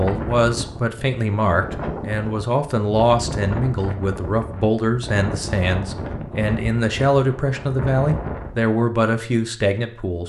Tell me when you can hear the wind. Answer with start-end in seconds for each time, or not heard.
0.0-8.7.